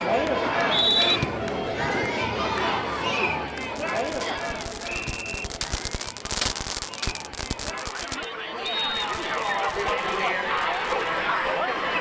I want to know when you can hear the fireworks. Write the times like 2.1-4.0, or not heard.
3.5-11.1.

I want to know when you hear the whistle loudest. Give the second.
1 s.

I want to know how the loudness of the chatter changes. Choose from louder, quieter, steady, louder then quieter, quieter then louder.
quieter then louder.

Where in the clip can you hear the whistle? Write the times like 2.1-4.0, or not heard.
0.4-1.2, 4.2-5.5, 8.6-9.6.